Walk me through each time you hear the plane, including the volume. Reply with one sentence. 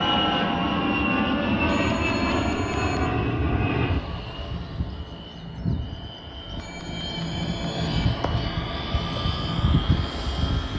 The plane can be heard from 0.0 to 10.7 s, getting quieter then louder.